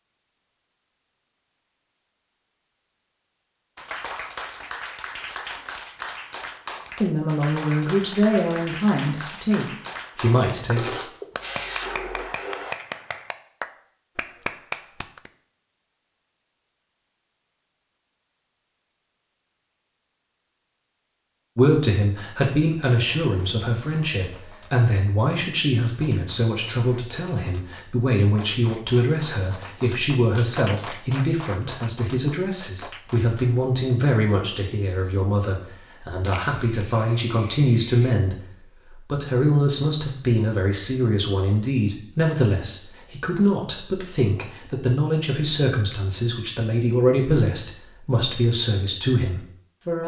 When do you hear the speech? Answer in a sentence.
You can hear the speech from 7.0 to 10.9 s and from 21.6 to 50.0 s.